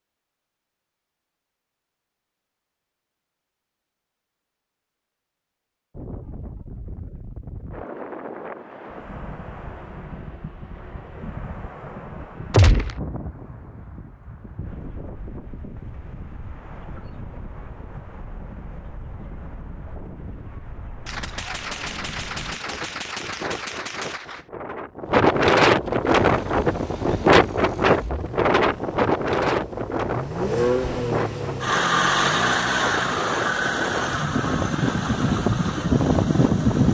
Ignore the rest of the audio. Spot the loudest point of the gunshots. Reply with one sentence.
The loudest moment of the gunshots is at 13 seconds.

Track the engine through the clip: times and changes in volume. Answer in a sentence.
The engine can be heard from 26.2 to 36.8 s, getting louder then quieter.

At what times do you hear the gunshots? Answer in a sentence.
You can hear the gunshots from 12.5 to 13.0 s and from 21.1 to 24.4 s.